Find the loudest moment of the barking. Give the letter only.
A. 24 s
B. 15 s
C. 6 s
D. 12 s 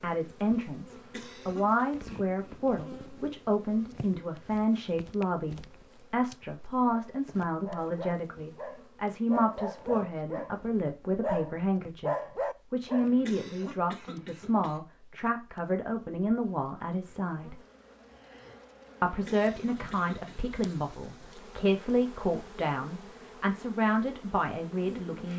D.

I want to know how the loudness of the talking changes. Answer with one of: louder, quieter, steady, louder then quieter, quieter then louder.
steady.